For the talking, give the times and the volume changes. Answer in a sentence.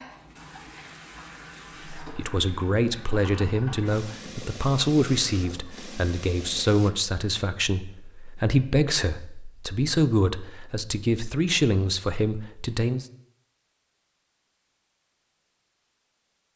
You can hear the talking from 1.9 to 13.1 s, at a steady volume.